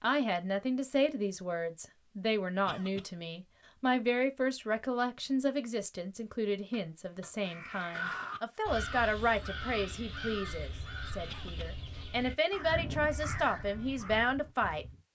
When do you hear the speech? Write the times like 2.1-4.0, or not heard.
0.0-14.8.